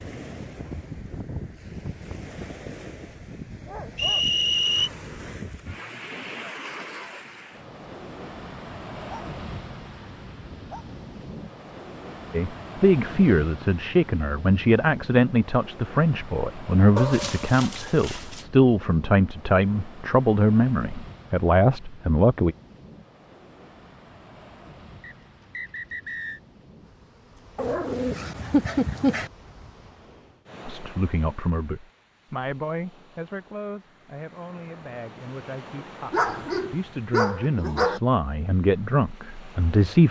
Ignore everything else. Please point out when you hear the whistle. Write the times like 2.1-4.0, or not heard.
4.0-4.9, 25.0-26.4.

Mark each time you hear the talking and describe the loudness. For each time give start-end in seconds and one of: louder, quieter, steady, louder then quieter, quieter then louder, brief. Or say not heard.
12.3-22.6 steady
30.6-40.0 quieter then louder.